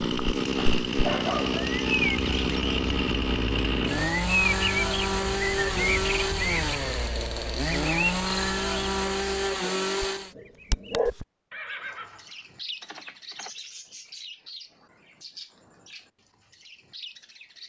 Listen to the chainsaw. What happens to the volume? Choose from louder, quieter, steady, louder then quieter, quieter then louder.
steady.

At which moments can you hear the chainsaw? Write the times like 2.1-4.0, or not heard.
0.0-10.3.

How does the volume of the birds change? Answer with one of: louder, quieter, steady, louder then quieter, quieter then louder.
quieter.